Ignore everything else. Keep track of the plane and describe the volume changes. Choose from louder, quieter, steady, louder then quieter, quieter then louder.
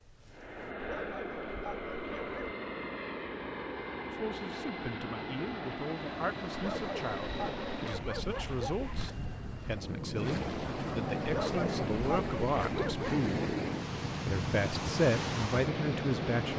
steady.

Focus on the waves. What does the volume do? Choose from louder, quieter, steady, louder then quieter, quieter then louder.
louder.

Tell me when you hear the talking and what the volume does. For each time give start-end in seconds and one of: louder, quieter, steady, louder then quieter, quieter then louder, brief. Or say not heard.
4.1-13.4 louder
14.2-16.5 brief.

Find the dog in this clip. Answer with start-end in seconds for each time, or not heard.
0.8-2.5, 6.5-9.1, 11.2-13.2.